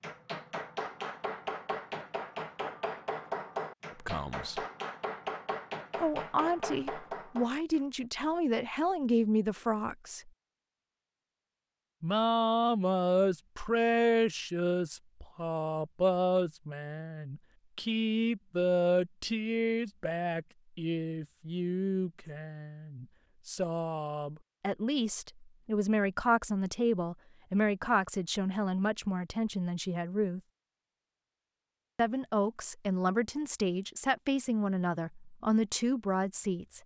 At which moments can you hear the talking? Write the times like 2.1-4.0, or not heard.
3.9-4.6, 6.0-10.3, 12.0-30.4, 31.9-36.8.